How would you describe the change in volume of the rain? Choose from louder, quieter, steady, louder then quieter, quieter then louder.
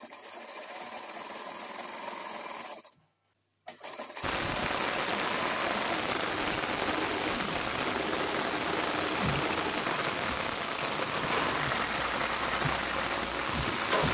steady.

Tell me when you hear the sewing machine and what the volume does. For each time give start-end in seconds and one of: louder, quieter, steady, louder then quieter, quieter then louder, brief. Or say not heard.
0.0-14.0 louder.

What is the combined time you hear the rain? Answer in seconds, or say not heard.
10 s.